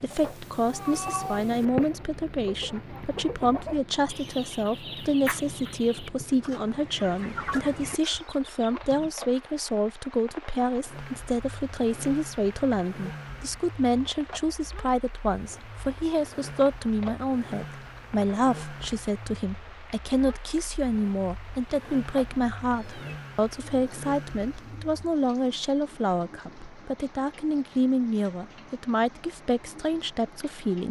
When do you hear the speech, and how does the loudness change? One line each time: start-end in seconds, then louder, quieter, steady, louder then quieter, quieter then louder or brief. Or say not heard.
0.0-30.8 steady.